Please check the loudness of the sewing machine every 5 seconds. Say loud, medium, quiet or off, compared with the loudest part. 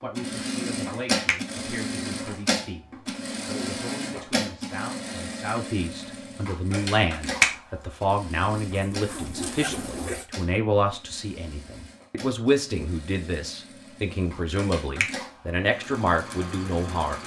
loud, medium, quiet, medium.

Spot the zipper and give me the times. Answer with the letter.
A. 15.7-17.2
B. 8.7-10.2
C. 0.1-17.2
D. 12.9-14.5
B.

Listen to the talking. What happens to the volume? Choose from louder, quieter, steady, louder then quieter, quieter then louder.
louder.